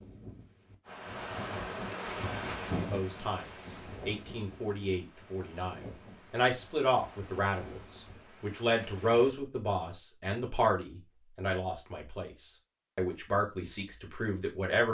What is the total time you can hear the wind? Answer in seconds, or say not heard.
9 s.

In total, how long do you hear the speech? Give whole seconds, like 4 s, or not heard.
12 s.